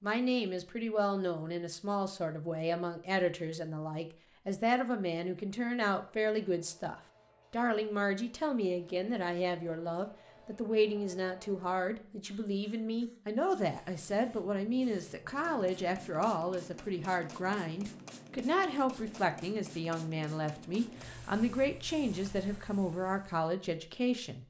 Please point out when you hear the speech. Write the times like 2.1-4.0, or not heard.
0.0-24.4.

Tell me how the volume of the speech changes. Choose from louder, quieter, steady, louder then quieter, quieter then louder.
steady.